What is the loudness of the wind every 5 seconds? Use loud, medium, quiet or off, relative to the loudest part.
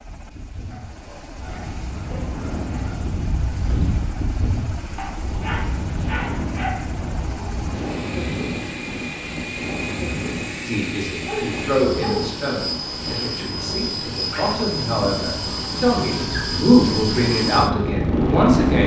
medium, medium, medium, loud.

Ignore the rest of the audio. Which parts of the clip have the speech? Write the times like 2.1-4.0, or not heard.
10.7-18.8.